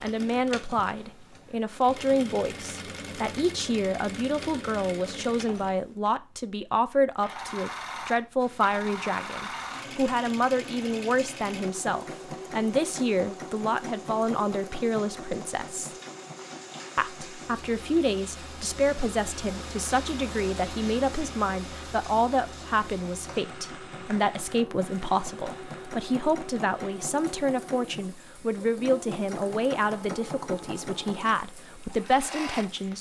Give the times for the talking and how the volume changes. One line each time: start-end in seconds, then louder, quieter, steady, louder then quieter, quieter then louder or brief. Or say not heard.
0.0-15.9 steady
16.9-32.9 steady.